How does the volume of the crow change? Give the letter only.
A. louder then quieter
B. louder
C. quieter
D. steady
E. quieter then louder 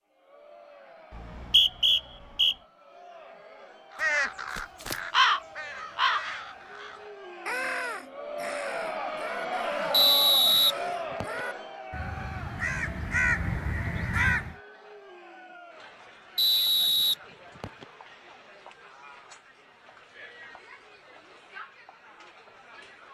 E.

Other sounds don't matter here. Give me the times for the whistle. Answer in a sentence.
The whistle can be heard from 1.1 to 2.5 s, from 9.9 to 11.4 s and from 16.4 to 17.9 s.